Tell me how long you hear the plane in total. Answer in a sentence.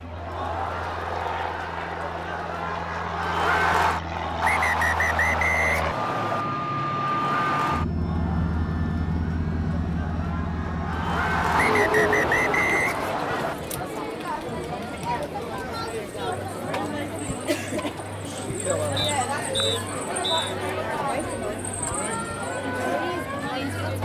You can hear the plane for 13 seconds altogether.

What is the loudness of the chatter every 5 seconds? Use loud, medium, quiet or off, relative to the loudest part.
loud, medium, loud, loud, loud.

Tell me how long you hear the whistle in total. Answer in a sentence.
You can hear the whistle for 6 seconds altogether.